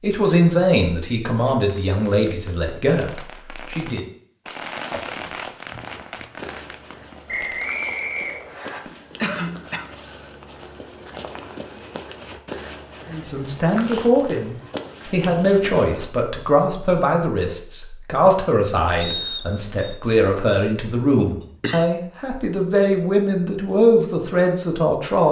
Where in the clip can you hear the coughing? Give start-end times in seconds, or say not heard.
4.9-6.5, 9.2-9.8, 21.4-21.9.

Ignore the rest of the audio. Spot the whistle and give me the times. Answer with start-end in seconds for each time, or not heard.
7.2-8.8, 19.0-19.9.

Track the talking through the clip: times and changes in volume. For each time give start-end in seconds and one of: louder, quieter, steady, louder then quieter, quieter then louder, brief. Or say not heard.
0.0-4.0 quieter
13.1-25.2 steady.